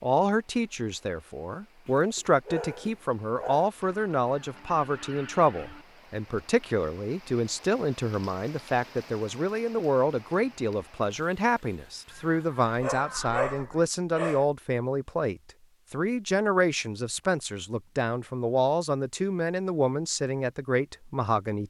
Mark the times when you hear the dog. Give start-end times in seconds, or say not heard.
1.9-3.7, 12.7-14.4.